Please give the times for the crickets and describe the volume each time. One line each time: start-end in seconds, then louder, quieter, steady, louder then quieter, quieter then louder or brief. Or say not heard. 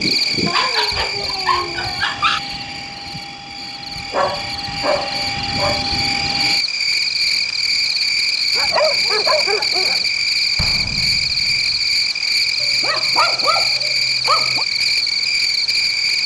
0.0-16.2 louder.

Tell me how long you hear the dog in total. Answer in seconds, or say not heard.
7 s.